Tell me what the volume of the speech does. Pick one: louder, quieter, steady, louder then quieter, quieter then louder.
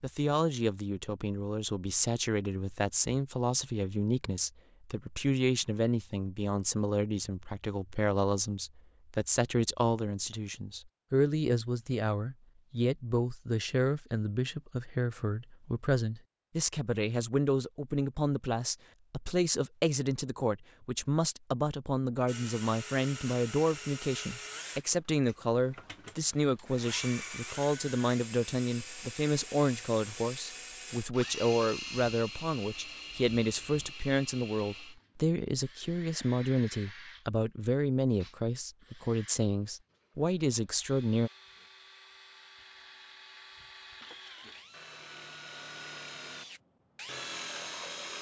steady.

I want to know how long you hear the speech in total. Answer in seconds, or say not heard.
41 s.